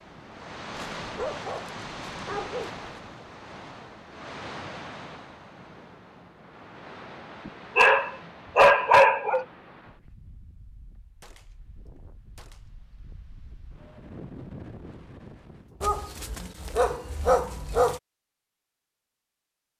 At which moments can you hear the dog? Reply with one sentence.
The dog can be heard from 0.8 to 3.2 s, from 7.5 to 9.4 s and from 15.8 to 18.0 s.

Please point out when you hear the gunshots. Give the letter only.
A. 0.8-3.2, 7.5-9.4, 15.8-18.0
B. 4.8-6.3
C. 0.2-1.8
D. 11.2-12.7
D.